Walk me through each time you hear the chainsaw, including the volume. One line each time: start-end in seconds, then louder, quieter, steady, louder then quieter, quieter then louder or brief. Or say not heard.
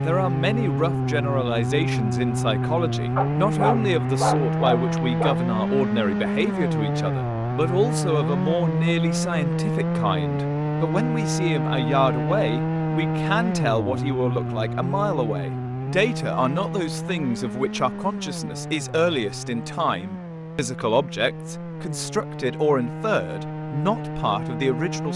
0.0-25.1 quieter.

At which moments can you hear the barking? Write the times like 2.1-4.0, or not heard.
3.1-5.4.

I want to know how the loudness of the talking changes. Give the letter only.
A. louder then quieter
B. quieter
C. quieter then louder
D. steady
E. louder
D.